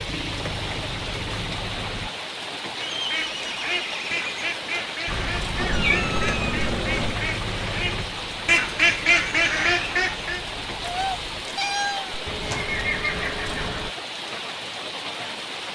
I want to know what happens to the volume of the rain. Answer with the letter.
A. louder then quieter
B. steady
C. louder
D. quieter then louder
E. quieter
B.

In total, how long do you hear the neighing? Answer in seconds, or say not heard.
3 s.